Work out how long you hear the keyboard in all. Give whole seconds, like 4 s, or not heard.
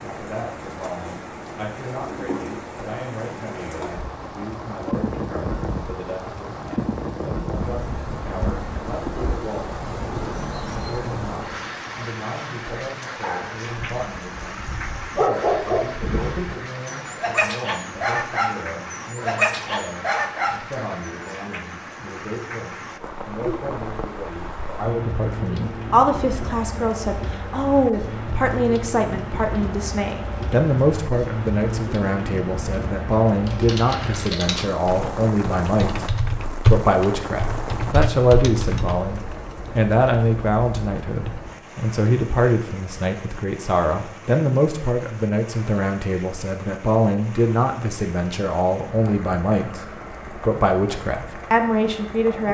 6 s.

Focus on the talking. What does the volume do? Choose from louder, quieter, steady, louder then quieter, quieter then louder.
louder.